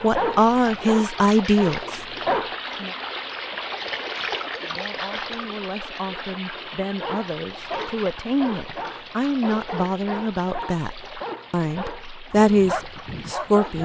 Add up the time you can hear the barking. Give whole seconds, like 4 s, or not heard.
9 s.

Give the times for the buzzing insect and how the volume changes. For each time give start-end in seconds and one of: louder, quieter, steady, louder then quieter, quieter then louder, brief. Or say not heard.
not heard.